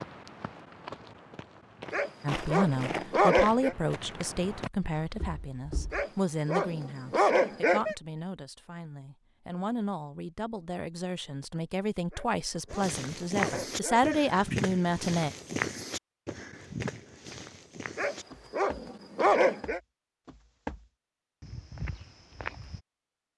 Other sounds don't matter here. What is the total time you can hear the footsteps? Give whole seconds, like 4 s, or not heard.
16 s.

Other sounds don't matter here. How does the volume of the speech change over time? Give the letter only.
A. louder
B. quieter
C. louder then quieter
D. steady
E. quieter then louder
E.